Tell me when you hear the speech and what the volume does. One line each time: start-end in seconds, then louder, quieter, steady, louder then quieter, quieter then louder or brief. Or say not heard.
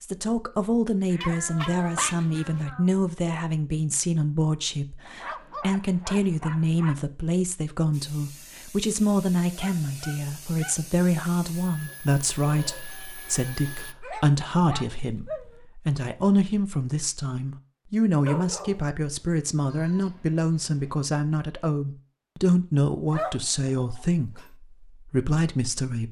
0.0-26.0 steady.